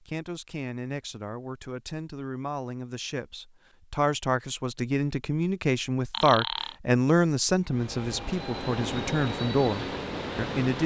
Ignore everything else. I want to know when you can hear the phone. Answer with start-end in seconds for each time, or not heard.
6.1-6.8.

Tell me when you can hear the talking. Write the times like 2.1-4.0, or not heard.
0.0-10.8.